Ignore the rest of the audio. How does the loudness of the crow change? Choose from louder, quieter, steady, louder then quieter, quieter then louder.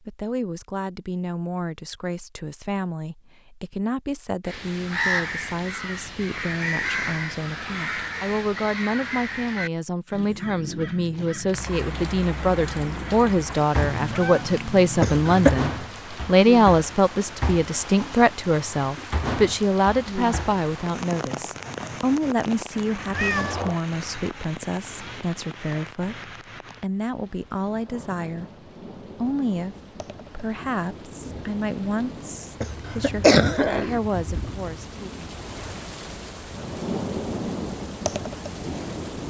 quieter.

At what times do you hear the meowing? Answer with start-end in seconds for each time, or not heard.
13.8-15.2, 23.1-23.8.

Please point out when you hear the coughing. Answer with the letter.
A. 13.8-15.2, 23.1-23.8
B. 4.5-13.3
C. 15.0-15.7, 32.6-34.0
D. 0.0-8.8
C.